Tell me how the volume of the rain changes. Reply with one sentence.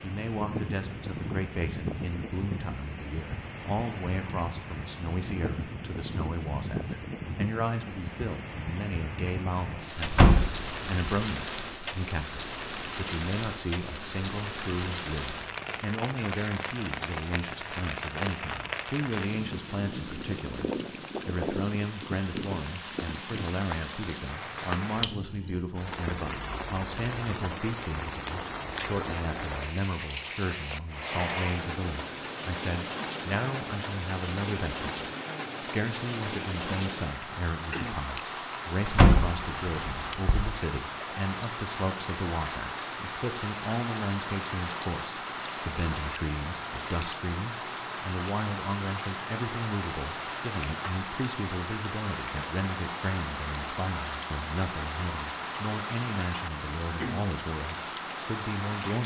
The loudness of the rain stays about the same.